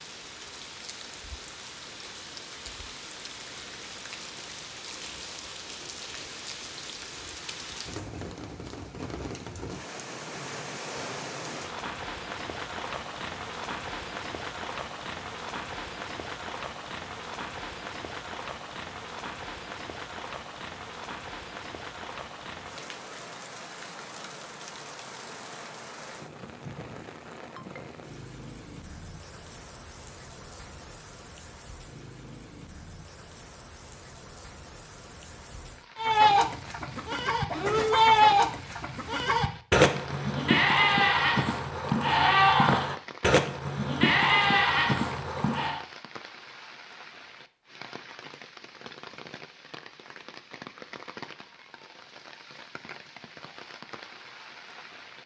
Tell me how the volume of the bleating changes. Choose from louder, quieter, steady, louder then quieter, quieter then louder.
steady.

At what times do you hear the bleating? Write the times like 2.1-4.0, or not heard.
36.0-45.8.